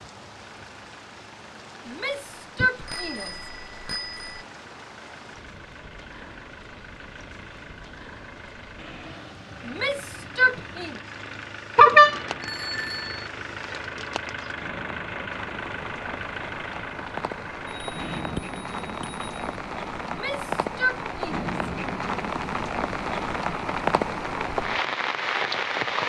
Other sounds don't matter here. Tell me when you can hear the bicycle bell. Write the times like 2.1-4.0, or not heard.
2.6-4.4, 11.8-13.3, 17.6-19.3.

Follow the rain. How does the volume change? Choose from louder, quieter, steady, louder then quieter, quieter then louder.
louder.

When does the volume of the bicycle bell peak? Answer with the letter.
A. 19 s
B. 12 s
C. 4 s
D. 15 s
B.